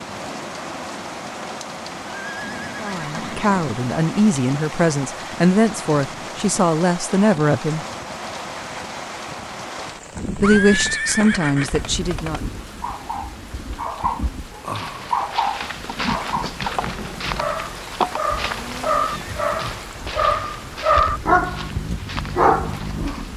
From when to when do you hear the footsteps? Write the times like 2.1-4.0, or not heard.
14.7-23.3.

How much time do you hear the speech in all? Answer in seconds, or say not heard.
7 s.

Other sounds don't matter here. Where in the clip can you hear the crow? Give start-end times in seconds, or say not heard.
not heard.